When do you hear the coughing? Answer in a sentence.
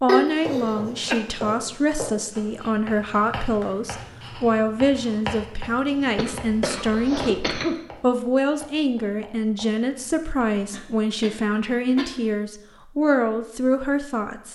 You can hear the coughing from 0.1 to 1.2 s, from 6.2 to 7.8 s and from 10.7 to 12.3 s.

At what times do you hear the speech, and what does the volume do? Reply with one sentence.
The speech can be heard from 0.0 to 14.5 s, at a steady volume.